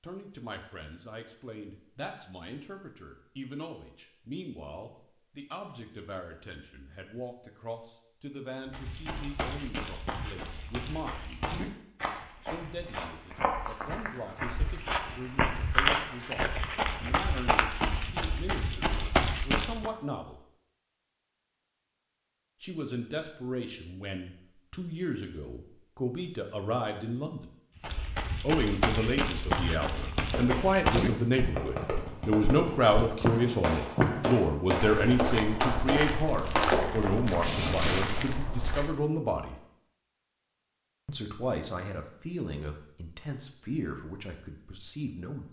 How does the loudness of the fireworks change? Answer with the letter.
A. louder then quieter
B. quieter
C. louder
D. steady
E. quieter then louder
C.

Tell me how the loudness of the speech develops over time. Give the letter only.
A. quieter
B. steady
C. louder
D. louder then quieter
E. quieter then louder
D.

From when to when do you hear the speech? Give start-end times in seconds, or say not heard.
0.0-11.4, 12.4-20.4, 22.6-27.4, 28.4-39.5, 41.0-45.4.